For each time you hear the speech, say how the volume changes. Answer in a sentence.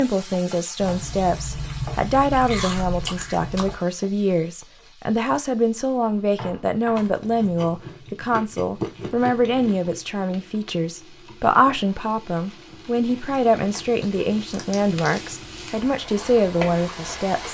The speech can be heard from 0.0 to 17.4 s, at a steady volume.